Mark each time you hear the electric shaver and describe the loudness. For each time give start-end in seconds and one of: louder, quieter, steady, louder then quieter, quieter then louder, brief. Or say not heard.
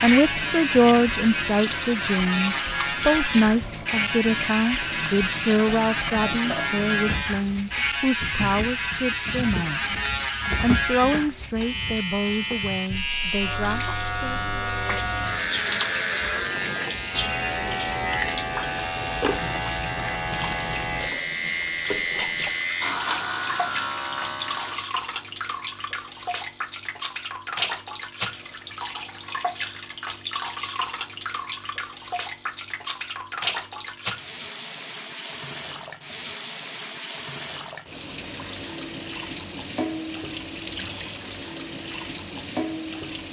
0.0-24.9 steady.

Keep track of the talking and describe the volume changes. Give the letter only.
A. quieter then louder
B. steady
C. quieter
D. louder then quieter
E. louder
C.